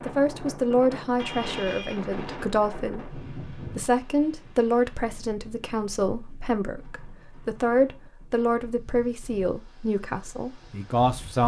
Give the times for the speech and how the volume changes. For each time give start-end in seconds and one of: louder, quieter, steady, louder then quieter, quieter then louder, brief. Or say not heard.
0.0-11.4 steady.